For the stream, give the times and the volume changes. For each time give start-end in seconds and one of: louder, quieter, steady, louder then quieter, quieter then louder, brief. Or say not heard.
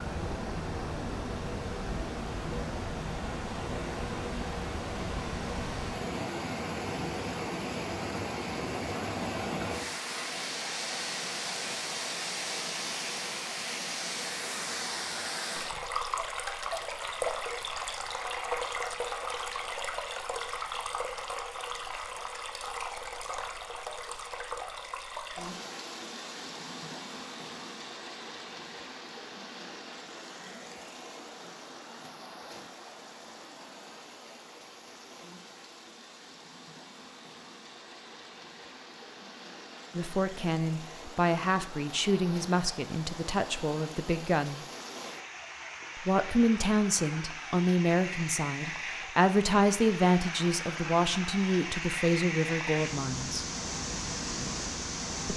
0.0-55.3 quieter then louder.